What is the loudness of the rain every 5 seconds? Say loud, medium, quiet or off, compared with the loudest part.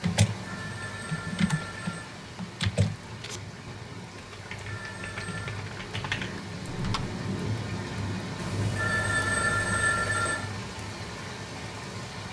medium, loud, loud.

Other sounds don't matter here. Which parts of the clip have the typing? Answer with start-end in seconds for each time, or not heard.
0.0-7.2.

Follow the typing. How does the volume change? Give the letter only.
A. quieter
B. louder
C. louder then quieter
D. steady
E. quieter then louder
E.